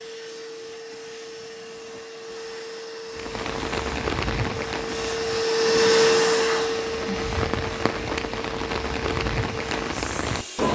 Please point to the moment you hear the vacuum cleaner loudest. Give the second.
6 s.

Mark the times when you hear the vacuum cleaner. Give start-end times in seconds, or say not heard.
0.0-10.7.